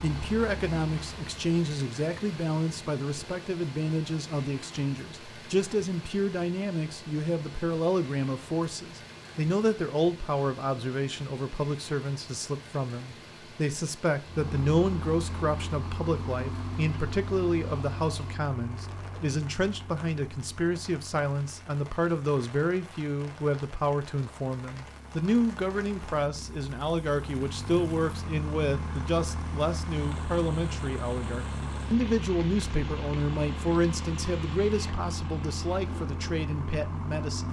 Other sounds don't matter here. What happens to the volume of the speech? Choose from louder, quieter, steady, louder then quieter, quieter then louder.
steady.